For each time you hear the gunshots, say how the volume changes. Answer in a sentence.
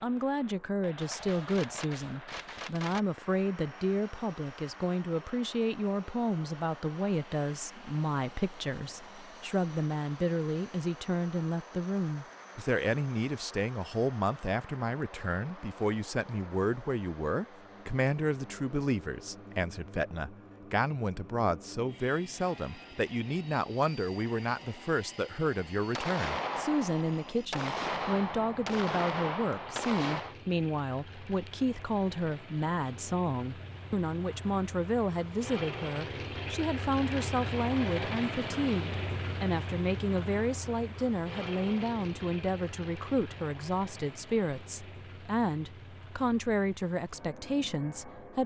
The gunshots can be heard briefly from 1.0 to 3.0 s; and from 25.9 to 30.4 s, at a steady volume.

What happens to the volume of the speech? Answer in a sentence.
The volume of the speech stays about the same.